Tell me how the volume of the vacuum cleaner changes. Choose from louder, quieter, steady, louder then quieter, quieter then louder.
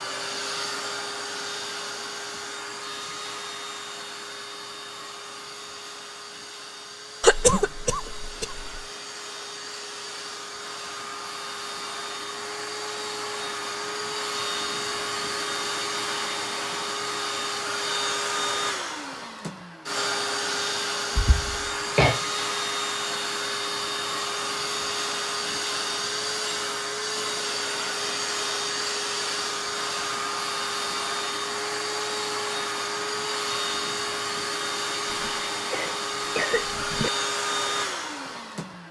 louder.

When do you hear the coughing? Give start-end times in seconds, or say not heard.
7.2-8.8, 21.1-22.2, 35.1-37.1.